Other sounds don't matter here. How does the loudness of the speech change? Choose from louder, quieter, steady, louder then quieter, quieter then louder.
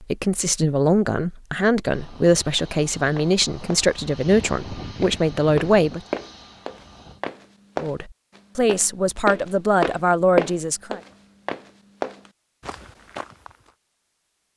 steady.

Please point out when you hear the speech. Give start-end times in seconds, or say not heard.
0.0-6.0, 7.8-11.0.